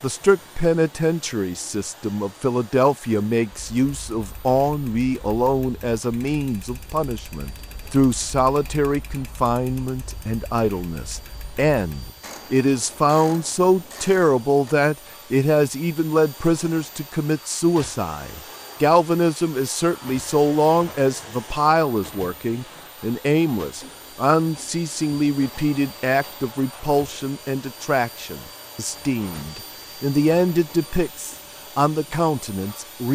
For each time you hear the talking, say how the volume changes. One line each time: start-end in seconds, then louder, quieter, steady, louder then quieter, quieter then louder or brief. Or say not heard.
0.0-33.0 steady.